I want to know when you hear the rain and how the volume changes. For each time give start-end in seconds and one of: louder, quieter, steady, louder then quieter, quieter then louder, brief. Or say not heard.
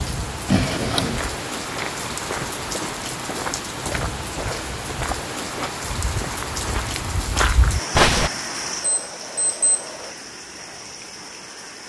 0.0-11.8 quieter.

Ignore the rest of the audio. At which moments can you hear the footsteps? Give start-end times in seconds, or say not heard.
1.0-8.3.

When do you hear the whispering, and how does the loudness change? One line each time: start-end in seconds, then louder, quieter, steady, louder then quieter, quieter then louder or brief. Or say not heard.
not heard.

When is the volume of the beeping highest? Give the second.
1 s.